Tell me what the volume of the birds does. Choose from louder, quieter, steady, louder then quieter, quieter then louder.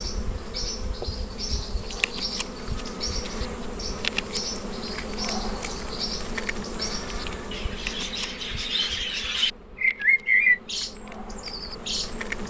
louder.